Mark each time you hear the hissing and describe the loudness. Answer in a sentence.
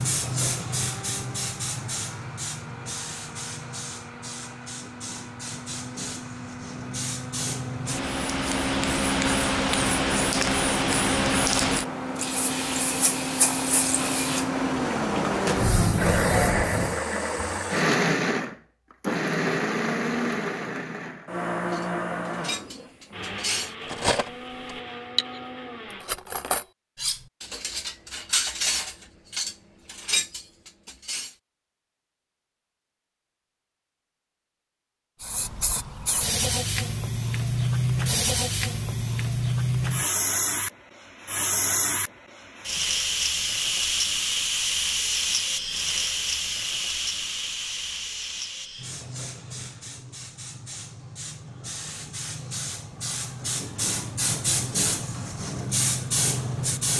The hissing can be heard from 0.0 to 17.0 s, getting quieter then louder; and from 35.2 to 56.9 s, getting quieter then louder.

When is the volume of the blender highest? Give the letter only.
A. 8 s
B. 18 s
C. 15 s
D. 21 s
B.